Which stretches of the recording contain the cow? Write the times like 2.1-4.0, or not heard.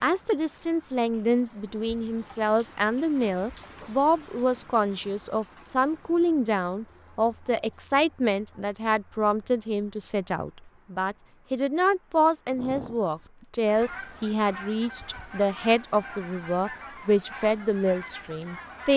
not heard.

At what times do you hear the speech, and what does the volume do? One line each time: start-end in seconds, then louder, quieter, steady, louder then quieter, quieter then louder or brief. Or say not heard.
0.0-18.9 steady.